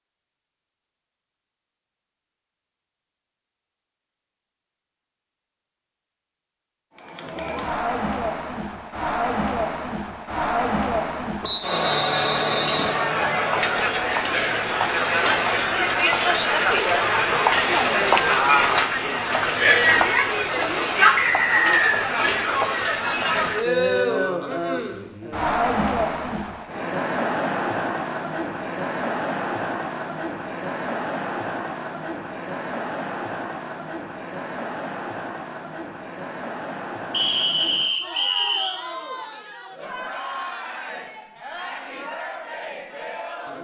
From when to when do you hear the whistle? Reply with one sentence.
You can hear the whistle from 11.4 to 12.9 s, from 21.1 to 22.1 s and from 37.1 to 38.8 s.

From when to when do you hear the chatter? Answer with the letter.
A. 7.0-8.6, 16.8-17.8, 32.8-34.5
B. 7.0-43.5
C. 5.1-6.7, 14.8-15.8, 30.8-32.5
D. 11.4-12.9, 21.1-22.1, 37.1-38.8
B.